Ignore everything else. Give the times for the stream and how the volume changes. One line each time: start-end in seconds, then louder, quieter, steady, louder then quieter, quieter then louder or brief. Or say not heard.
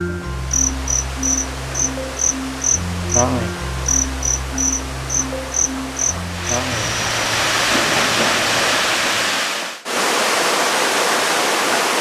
0.0-11.9 louder.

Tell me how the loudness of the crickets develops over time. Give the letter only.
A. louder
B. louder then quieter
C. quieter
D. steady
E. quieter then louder
C.